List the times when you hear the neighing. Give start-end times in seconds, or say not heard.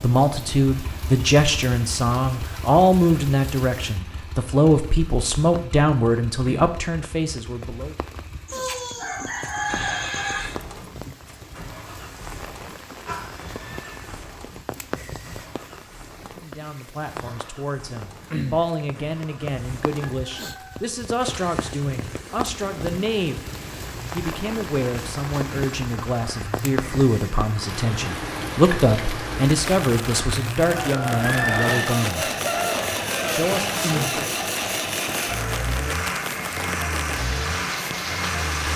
8.5-10.5, 13.1-14.2, 31.2-31.9.